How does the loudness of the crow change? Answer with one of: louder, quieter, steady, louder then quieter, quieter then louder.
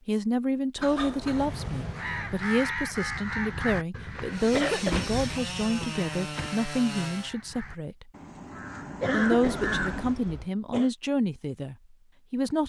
quieter then louder.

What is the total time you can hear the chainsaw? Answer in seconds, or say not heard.
3 s.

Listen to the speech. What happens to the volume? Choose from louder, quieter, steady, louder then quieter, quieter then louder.
steady.